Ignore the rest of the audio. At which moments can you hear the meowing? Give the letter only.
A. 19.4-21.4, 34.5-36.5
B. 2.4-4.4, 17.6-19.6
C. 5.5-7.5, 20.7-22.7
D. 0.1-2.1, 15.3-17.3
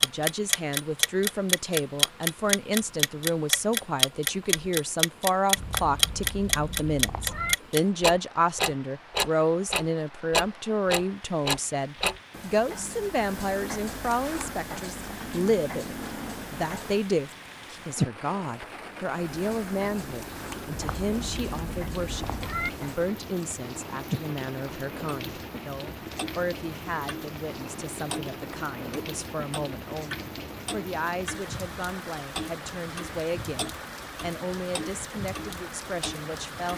C.